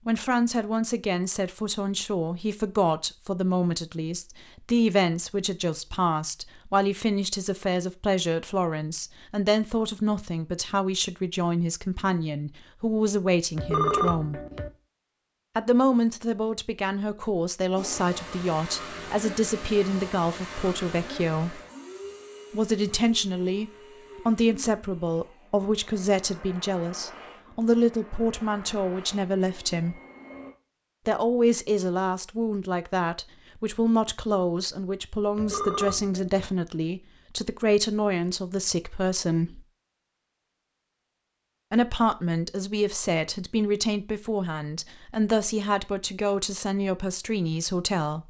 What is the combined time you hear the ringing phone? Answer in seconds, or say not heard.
2 s.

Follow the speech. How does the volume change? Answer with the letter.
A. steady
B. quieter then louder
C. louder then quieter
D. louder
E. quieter
A.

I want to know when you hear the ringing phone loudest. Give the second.
14 s.